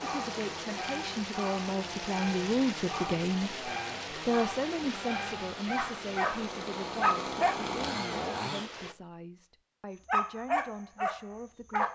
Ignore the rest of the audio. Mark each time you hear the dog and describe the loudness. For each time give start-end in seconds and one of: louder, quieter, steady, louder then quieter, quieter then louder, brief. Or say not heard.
0.0-7.5 louder
10.1-11.9 brief.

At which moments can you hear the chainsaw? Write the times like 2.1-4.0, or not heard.
0.0-8.7.